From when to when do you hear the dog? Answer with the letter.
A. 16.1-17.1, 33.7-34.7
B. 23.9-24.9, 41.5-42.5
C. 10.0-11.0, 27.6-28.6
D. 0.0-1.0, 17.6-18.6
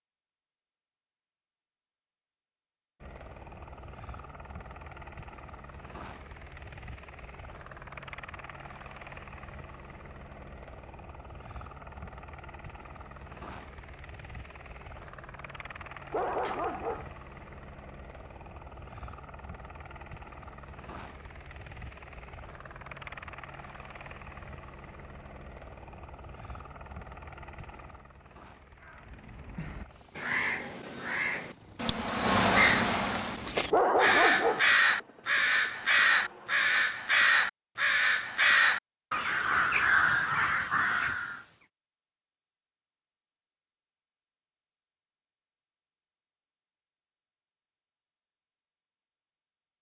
A.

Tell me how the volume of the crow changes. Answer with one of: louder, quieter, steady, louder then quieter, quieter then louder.
louder.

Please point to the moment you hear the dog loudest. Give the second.
34 s.